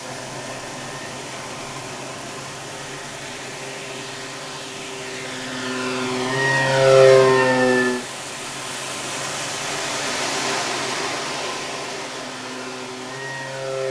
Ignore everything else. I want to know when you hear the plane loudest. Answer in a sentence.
The loudest moment of the plane is at 7 seconds.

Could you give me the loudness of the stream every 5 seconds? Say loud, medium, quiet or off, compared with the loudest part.
medium, loud, loud.